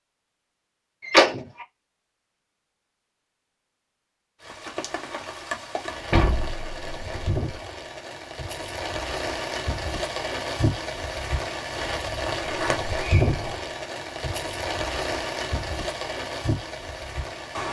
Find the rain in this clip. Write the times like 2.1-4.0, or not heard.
4.4-17.6.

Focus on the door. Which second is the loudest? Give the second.
1 s.